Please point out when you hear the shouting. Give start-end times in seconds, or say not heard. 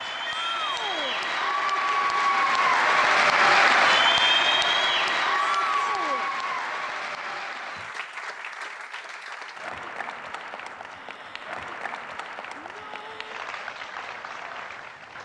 0.2-1.2, 5.3-6.3, 12.6-13.2.